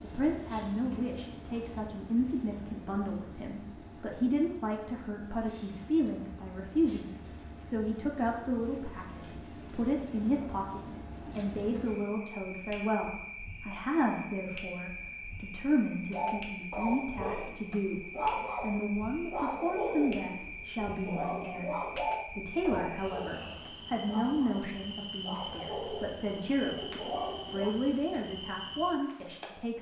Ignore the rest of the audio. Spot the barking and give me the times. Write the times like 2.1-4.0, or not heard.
16.1-27.8.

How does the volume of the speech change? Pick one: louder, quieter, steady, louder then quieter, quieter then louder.
steady.